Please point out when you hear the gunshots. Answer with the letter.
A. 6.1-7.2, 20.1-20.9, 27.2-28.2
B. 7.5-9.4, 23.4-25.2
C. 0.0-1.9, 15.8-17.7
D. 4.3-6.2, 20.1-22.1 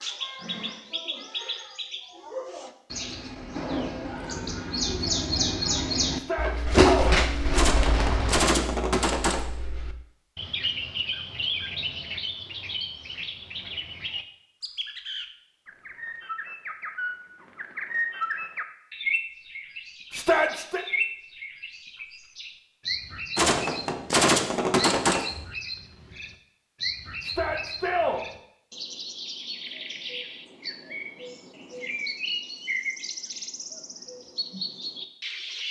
B.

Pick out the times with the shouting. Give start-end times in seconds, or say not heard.
6.1-7.2, 20.1-20.9, 27.2-28.2.